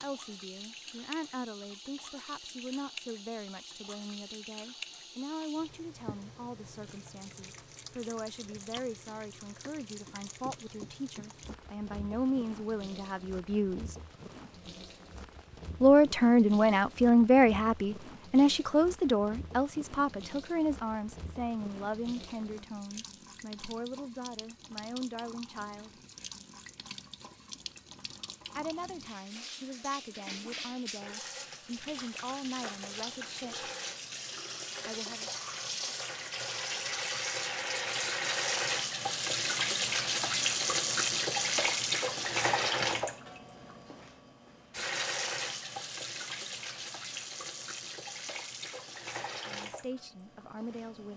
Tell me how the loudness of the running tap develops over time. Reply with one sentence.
The loudness of the running tap goes up.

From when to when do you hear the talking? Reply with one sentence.
The talking can be heard from 0.0 to 13.9 s, from 15.8 to 25.9 s, from 28.6 to 33.7 s, from 34.9 to 35.3 s and from 49.5 to 51.1 s.